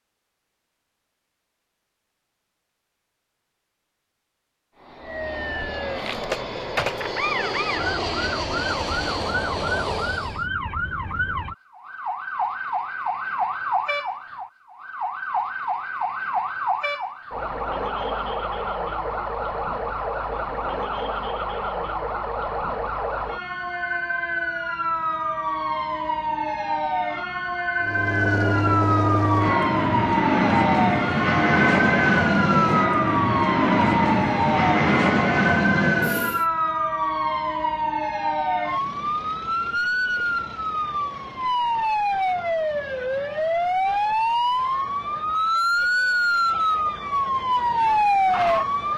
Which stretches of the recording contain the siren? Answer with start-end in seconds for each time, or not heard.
5.0-48.9.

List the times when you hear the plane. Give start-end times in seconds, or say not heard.
4.8-10.4, 27.8-36.5.